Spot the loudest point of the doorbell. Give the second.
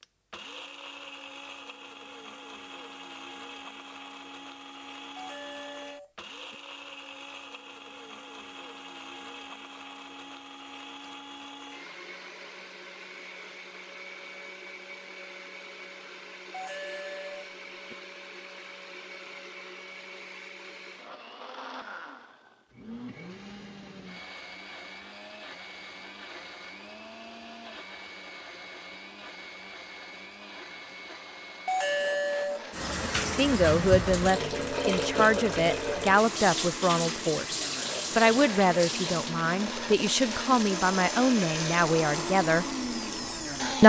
32 s.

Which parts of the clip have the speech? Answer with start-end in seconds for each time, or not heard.
33.4-42.7.